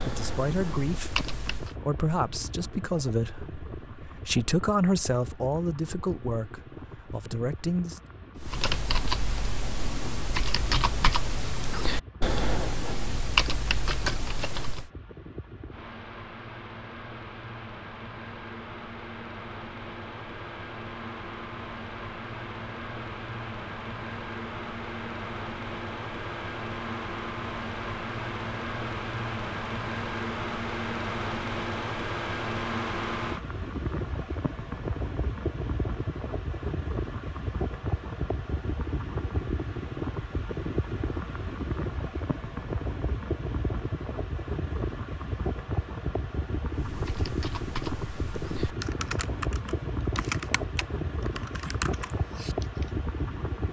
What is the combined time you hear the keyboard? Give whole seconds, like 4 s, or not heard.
15 s.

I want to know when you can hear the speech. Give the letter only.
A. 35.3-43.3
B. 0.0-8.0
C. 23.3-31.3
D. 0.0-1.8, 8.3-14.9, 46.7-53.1
B.